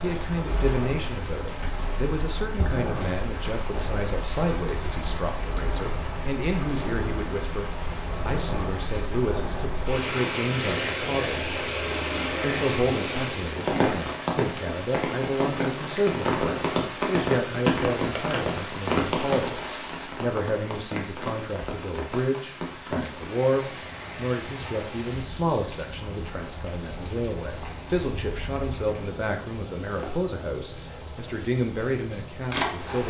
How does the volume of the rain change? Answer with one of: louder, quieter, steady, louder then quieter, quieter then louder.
louder then quieter.